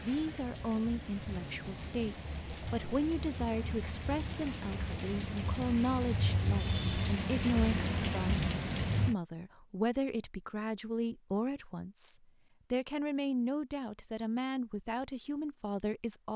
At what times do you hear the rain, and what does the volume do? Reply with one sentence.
The rain can be heard from 0.0 to 9.2 s, getting louder.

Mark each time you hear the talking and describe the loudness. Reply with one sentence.
You can hear the talking from 0.0 to 16.3 s, at a steady volume.